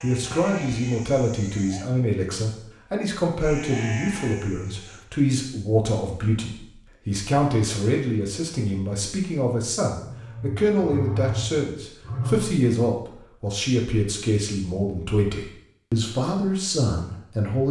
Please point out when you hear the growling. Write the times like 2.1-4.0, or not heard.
9.9-12.6.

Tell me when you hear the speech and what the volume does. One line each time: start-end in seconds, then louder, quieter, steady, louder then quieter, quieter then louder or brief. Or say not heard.
0.0-17.6 steady.